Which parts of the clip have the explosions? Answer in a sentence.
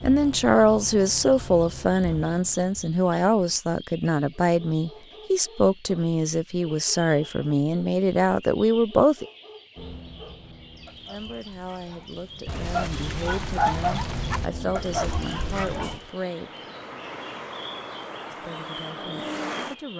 You can hear the explosions from 12.4 to 14.5 s.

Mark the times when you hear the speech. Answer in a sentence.
You can hear the speech from 0.0 to 9.2 s, from 11.1 to 16.5 s and from 18.3 to 19.9 s.